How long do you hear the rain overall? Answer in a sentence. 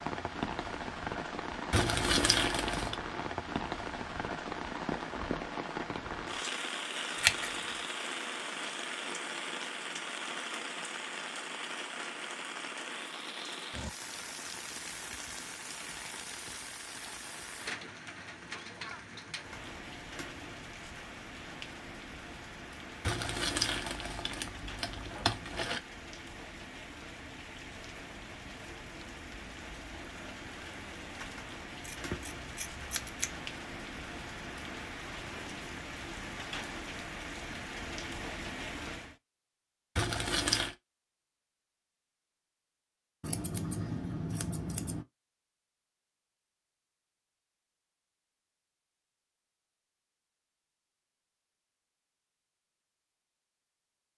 The rain can be heard for 39 seconds in total.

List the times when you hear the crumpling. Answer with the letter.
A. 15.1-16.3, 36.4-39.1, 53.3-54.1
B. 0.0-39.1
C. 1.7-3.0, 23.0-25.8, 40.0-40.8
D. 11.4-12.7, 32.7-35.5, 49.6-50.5
C.